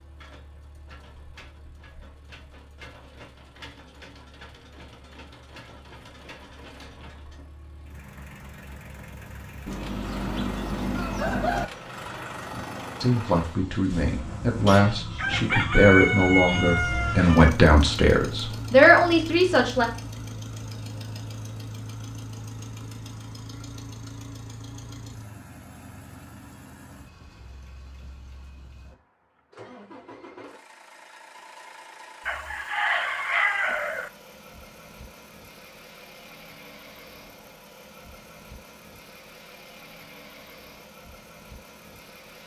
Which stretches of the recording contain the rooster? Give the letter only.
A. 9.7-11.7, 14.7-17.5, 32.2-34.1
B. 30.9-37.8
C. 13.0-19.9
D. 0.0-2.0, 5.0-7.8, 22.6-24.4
A.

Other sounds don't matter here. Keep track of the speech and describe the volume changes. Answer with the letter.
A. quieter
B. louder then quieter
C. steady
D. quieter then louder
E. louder
E.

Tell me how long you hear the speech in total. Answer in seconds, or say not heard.
7 s.